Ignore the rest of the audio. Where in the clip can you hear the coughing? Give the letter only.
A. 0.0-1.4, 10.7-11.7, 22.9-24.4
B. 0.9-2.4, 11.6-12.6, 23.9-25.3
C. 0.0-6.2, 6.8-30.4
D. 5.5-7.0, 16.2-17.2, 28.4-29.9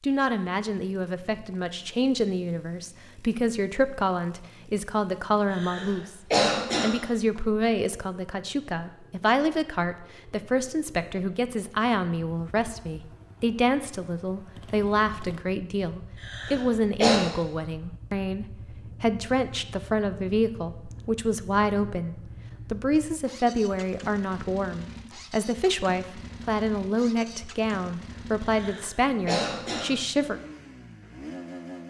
D.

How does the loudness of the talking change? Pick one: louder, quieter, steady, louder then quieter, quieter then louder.
steady.